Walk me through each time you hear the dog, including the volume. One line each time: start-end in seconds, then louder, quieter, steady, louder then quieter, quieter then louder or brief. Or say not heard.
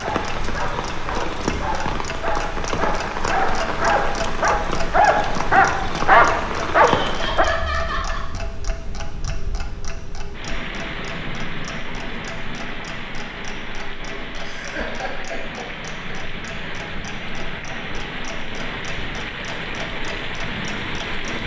0.0-7.5 louder.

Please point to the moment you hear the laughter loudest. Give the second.
8 s.